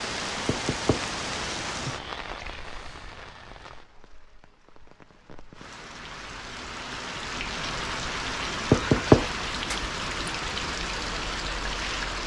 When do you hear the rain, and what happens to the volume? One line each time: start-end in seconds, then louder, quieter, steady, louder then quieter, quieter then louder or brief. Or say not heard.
0.0-12.2 quieter then louder.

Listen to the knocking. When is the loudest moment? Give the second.
9 s.